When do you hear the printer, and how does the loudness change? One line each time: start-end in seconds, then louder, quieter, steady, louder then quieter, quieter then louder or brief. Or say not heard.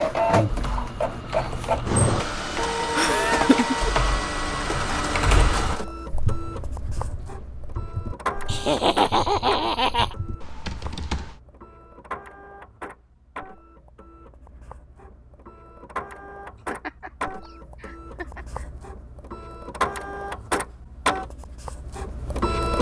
0.0-22.7 quieter then louder.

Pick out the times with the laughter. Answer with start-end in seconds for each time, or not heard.
2.9-3.8, 8.4-10.2, 16.7-18.6.